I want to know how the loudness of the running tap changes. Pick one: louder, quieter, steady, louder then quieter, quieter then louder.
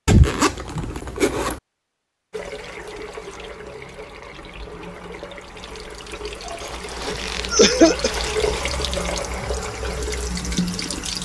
louder.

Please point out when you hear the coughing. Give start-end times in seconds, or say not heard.
7.0-8.1.